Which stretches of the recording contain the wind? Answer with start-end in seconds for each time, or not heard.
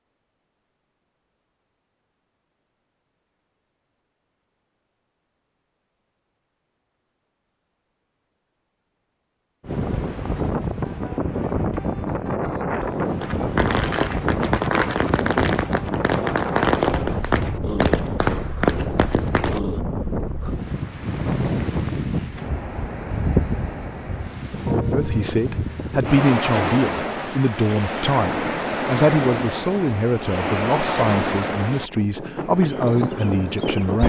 9.6-34.0.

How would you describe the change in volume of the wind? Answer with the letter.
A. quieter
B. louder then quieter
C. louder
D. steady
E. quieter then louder
D.